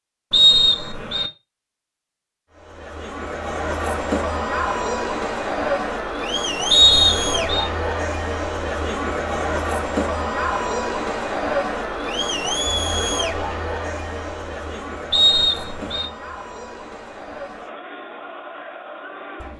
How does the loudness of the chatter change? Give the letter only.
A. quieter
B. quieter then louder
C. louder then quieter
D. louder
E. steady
A.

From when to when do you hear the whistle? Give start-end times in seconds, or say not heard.
0.3-1.3, 6.7-7.7, 15.1-16.1.